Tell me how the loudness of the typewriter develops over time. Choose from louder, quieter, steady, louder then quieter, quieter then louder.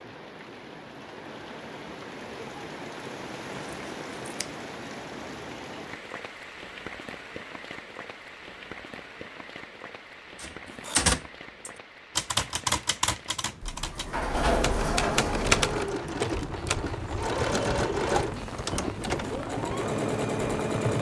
quieter then louder.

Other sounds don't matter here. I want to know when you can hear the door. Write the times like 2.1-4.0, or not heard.
13.6-15.9.